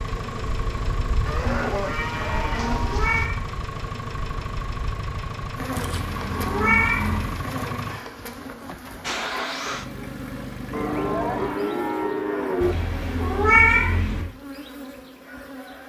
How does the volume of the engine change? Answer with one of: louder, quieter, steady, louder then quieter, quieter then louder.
steady.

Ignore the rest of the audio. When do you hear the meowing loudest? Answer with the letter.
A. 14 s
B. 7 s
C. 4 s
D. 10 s
A.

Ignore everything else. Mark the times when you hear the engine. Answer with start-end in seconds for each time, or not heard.
0.0-11.6.